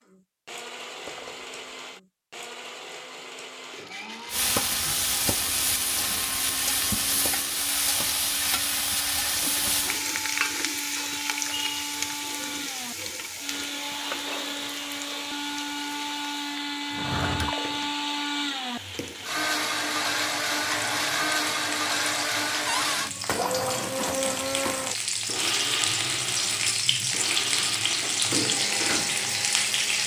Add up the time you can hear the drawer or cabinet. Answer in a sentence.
The drawer or cabinet can be heard for 2 seconds in total.